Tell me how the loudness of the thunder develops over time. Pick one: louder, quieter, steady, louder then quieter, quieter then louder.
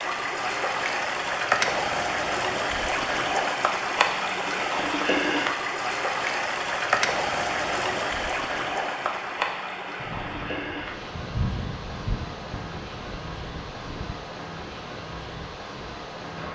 louder then quieter.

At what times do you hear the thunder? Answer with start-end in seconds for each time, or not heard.
10.0-14.2.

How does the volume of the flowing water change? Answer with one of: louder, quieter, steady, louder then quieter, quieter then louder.
quieter.